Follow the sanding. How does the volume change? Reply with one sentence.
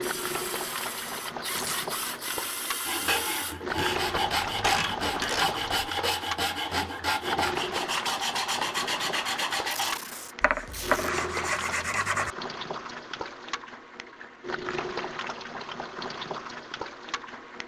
The loudness of the sanding stays about the same.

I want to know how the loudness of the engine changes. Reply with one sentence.
The volume of the engine stays about the same.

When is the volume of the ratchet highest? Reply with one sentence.
The loudest moment of the ratchet is at 5 seconds.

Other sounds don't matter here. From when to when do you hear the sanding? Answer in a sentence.
The sanding can be heard from 2.9 to 12.3 s.